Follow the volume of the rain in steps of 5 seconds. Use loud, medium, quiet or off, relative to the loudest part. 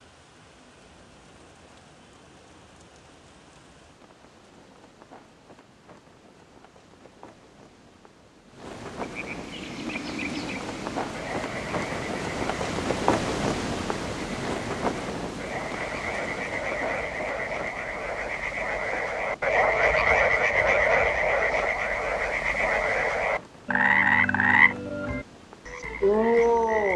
quiet, quiet, loud, medium, quiet, quiet.